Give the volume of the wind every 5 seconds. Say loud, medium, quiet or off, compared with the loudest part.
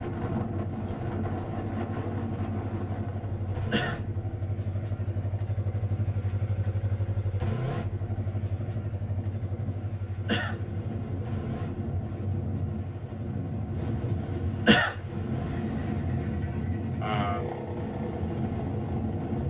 loud, medium, loud, loud.